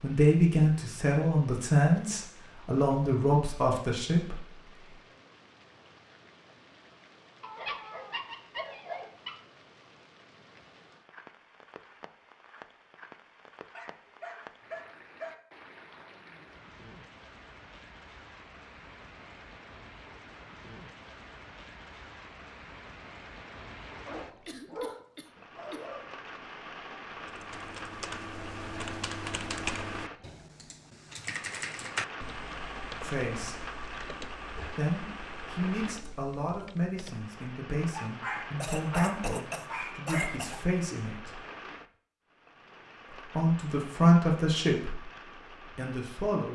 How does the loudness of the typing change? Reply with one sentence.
The volume of the typing goes down.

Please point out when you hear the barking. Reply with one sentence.
You can hear the barking from 7.4 to 9.4 s, from 13.7 to 15.3 s, from 24.1 to 26.1 s and from 37.9 to 40.4 s.